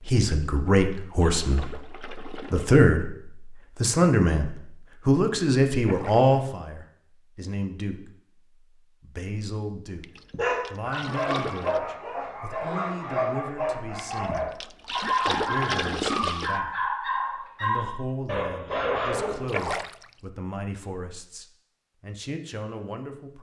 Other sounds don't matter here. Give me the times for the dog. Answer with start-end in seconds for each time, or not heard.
10.3-19.5.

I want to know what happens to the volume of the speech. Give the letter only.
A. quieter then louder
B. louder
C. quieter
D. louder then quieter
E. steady
C.